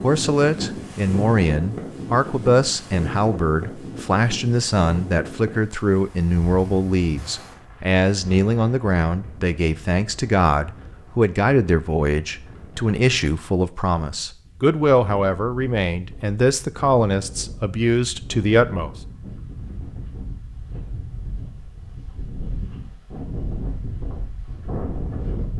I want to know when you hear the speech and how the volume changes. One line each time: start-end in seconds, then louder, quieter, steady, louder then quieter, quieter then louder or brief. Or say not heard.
0.0-18.9 steady.